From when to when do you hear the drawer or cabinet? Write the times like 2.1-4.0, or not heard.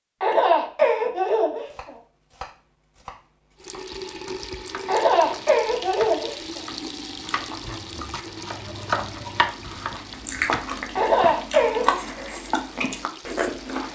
not heard.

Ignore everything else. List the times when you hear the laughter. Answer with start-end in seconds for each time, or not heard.
0.2-1.9, 4.8-6.6, 10.9-11.9.